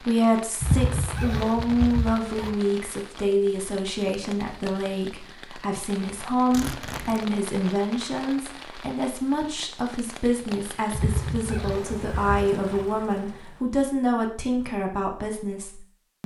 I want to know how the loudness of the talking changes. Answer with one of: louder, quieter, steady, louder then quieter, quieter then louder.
steady.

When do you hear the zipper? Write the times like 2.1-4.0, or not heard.
0.6-2.5, 6.5-7.2, 10.9-12.8.